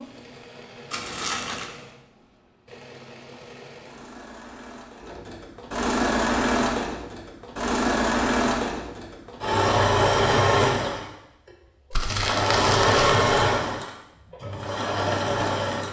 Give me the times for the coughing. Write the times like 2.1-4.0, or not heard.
not heard.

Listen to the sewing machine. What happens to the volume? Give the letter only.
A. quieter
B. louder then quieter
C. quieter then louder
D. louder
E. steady
D.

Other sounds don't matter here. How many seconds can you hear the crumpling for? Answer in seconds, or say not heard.
2 s.